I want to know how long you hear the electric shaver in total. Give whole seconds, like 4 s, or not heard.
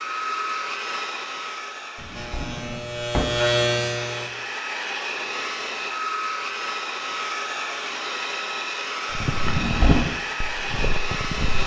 2 s.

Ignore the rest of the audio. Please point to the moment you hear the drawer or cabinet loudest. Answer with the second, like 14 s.
10 s.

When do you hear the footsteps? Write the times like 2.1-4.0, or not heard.
9.1-11.6.